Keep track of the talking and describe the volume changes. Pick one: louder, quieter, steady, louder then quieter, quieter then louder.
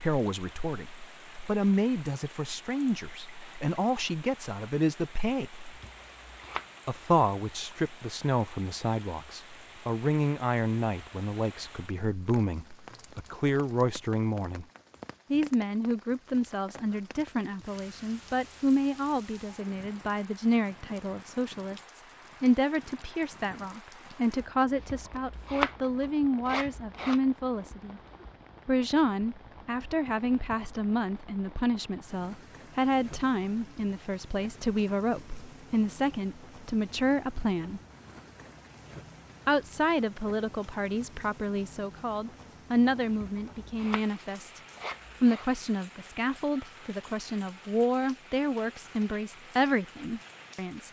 steady.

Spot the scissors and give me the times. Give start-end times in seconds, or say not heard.
5.7-6.7, 24.8-27.2, 43.1-45.5.